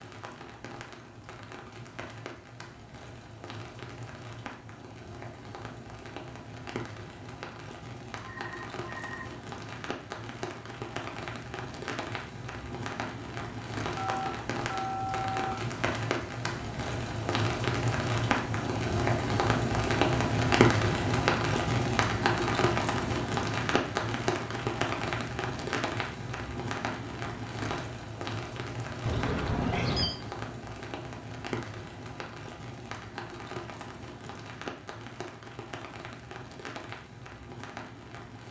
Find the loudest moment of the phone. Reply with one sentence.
The volume of the phone peaks at 30 seconds.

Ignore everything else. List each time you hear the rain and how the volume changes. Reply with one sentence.
You can hear the rain from 0.0 to 38.4 s, getting louder then quieter.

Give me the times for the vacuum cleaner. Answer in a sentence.
You can't hear the vacuum cleaner here.